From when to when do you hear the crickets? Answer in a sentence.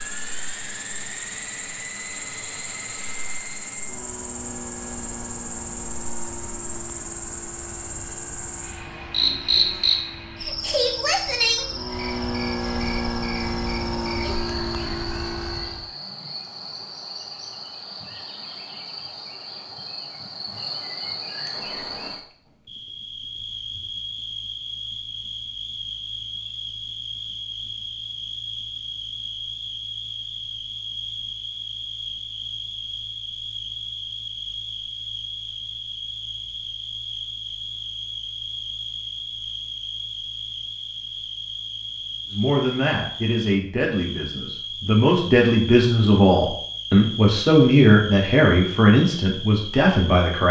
The crickets can be heard from 0.0 to 50.4 s.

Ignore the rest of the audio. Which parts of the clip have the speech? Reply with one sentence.
The speech can be heard from 42.3 to 50.4 s.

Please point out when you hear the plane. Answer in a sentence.
You can hear the plane from 0.0 to 15.9 s.